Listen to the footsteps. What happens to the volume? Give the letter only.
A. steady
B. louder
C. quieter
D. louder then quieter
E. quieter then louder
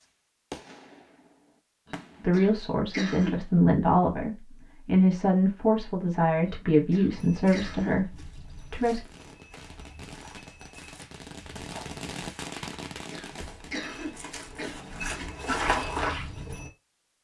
B.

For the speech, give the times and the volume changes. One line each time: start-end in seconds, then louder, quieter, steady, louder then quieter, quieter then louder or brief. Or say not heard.
2.2-9.0 steady.